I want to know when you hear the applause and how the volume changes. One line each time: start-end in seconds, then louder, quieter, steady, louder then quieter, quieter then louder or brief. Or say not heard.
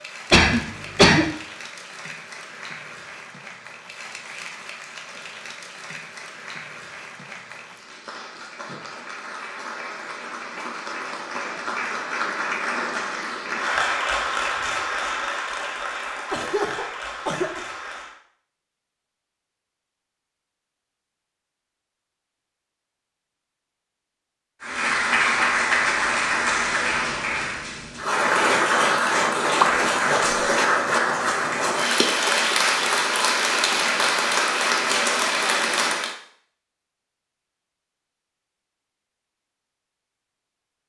0.0-18.2 louder
24.6-36.1 steady.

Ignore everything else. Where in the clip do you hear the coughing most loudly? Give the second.
1 s.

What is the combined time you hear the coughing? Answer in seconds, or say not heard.
3 s.